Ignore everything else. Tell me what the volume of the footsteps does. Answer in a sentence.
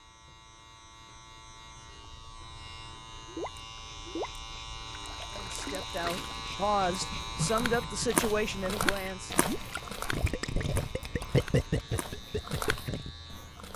The volume of the footsteps goes down, then up.